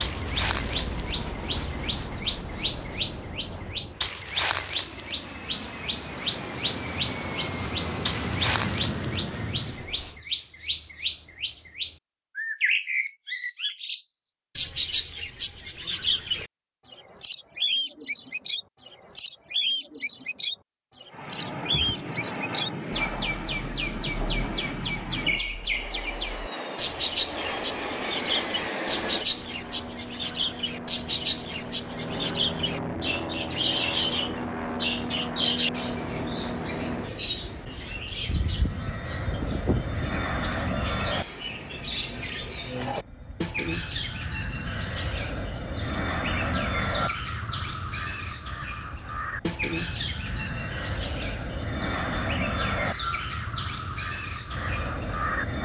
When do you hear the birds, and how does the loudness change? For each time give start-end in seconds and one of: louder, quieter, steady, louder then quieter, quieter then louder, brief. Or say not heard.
0.0-55.6 steady.